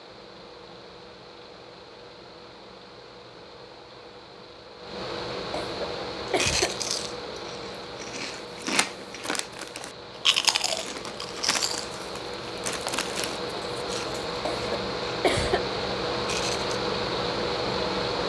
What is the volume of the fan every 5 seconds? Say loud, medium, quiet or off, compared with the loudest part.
quiet, medium, medium, loud.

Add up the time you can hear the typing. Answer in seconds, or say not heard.
not heard.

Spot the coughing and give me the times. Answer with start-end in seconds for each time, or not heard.
5.6-6.9, 14.4-15.7.